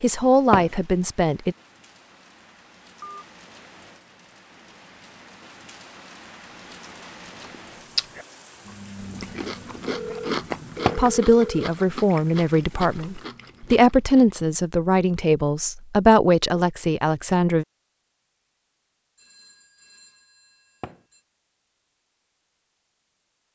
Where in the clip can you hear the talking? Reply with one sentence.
The talking can be heard from 0.0 to 1.6 s and from 10.9 to 17.6 s.